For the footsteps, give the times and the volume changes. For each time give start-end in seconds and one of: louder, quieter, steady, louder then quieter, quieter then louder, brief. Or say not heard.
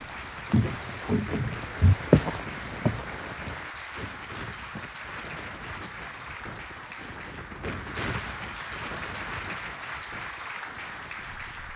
0.5-5.4 louder then quieter.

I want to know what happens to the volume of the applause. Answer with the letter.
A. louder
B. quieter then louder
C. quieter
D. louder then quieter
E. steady
E.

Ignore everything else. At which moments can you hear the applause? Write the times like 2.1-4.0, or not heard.
0.0-11.7.